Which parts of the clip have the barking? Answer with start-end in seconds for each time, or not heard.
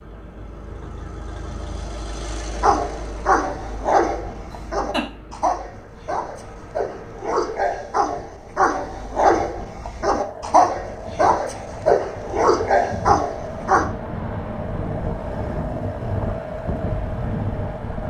2.5-13.8.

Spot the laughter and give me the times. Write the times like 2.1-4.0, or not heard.
4.5-5.0.